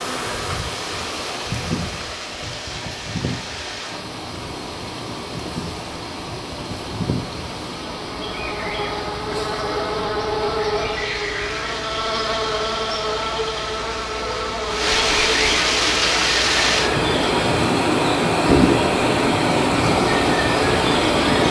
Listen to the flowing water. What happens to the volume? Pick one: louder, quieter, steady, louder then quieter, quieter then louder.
louder.